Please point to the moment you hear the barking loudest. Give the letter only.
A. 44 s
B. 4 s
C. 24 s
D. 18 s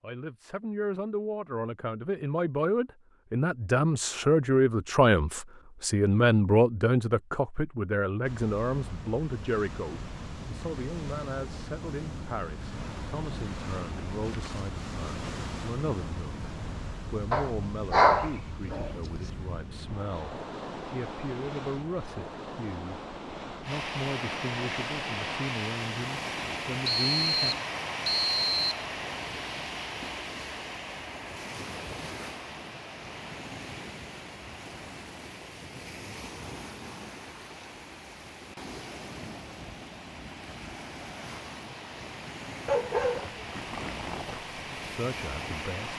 D.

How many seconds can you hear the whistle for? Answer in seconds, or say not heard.
2 s.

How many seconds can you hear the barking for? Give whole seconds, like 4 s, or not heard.
3 s.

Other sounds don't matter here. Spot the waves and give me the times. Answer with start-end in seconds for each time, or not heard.
8.2-45.9.